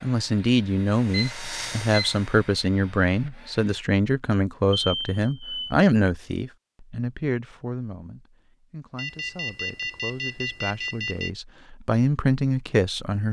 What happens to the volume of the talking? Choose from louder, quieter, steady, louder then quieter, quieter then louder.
quieter then louder.